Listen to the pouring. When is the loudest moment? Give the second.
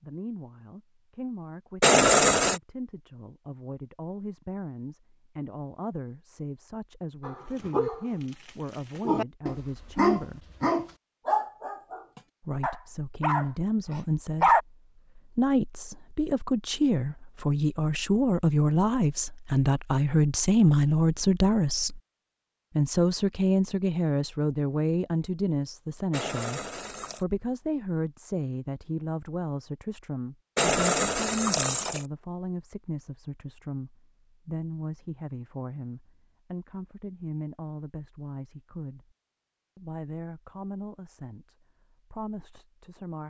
2 s.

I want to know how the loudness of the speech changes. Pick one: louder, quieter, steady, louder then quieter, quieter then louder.
louder then quieter.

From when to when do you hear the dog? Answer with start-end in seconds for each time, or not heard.
7.2-14.6.